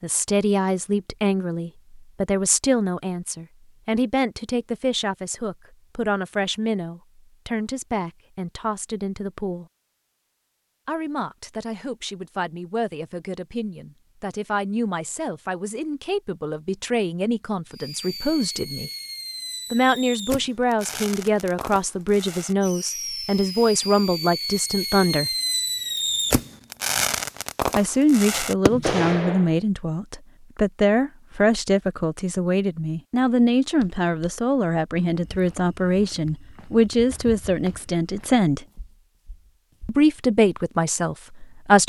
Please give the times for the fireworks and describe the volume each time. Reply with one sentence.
You can hear the fireworks from 17.7 to 29.6 s, getting louder.